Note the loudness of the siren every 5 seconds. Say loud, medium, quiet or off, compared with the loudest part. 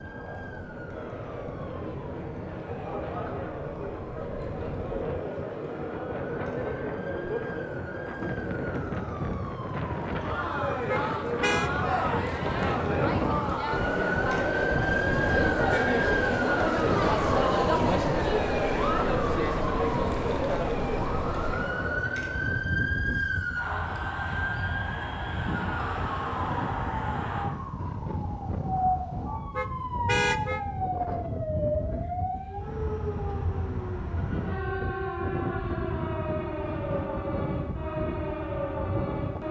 quiet, quiet, loud, loud, loud, loud, loud, loud.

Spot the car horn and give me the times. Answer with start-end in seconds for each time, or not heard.
10.8-11.7, 29.6-30.6.